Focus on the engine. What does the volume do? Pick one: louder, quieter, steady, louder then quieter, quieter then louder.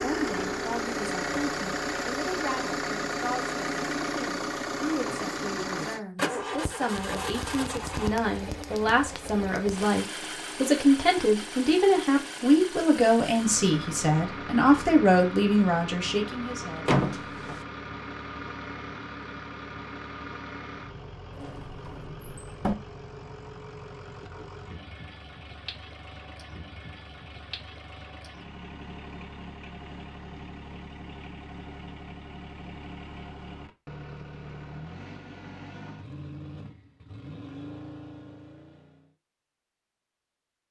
quieter.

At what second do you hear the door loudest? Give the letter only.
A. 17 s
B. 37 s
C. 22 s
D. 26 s
A.